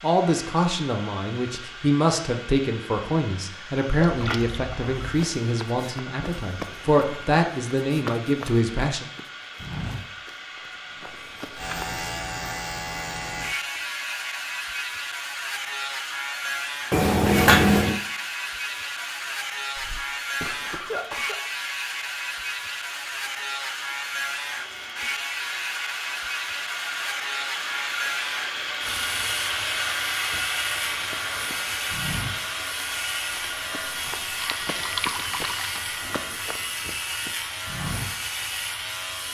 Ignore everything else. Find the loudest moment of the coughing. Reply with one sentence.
The volume of the coughing peaks at 21 seconds.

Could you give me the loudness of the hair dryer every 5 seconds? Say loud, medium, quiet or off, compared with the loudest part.
medium, medium, medium, medium, medium, loud, loud, medium.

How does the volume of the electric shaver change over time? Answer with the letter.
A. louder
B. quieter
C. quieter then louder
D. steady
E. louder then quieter
D.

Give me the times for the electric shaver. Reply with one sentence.
The electric shaver can be heard from 11.6 to 39.2 s.